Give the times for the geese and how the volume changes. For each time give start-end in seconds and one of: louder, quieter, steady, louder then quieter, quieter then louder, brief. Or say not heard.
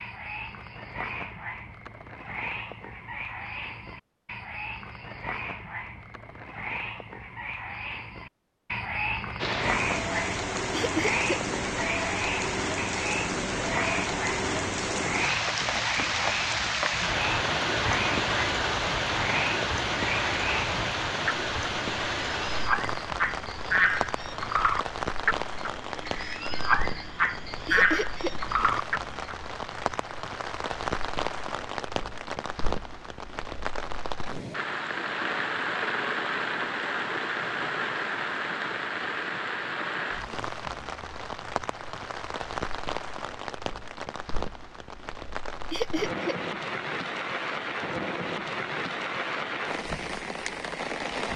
not heard.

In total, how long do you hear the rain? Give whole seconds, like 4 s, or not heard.
42 s.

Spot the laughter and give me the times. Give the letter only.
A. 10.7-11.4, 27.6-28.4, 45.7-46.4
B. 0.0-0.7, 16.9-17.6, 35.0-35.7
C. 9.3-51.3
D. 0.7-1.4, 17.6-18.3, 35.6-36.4
A.